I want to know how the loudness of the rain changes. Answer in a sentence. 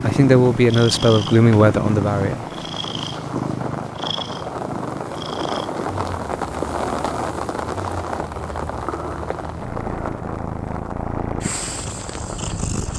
The volume of the rain goes up, then down.